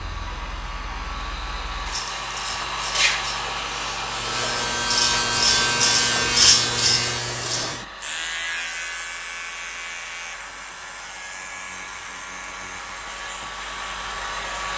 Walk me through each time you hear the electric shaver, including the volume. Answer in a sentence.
You can hear the electric shaver from 0.0 to 14.7 s, getting louder then quieter.